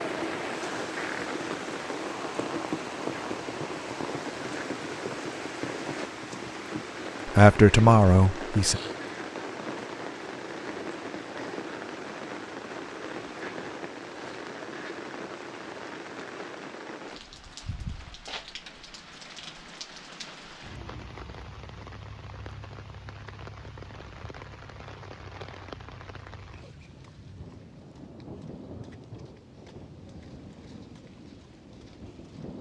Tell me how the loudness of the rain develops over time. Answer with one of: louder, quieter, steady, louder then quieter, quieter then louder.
quieter.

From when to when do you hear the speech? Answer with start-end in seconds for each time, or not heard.
7.2-8.8.